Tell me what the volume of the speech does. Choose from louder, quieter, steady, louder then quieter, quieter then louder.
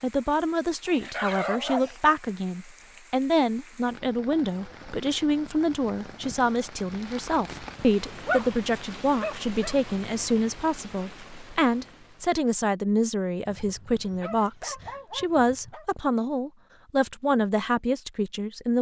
steady.